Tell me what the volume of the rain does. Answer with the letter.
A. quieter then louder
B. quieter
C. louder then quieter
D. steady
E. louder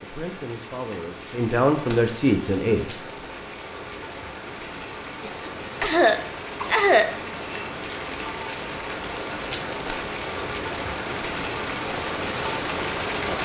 E.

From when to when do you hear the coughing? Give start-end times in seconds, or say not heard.
5.2-7.7.